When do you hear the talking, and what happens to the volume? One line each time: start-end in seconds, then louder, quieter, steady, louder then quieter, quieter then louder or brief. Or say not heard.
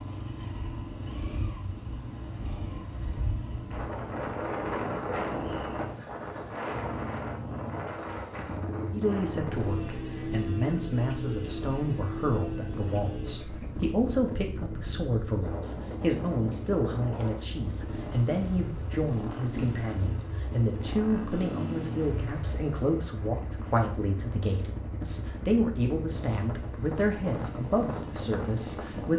8.9-29.1 steady.